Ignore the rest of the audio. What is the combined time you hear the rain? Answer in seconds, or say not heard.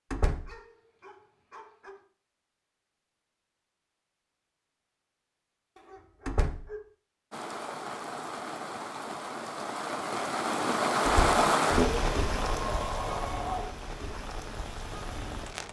8 s.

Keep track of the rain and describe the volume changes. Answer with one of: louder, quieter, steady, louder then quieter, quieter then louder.
louder then quieter.